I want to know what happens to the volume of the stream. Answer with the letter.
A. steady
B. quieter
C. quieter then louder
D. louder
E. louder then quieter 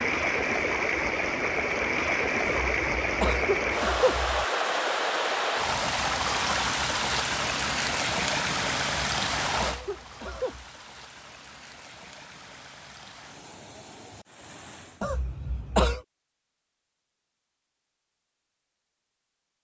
B.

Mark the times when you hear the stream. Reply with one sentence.
The stream can be heard from 0.0 to 15.1 s.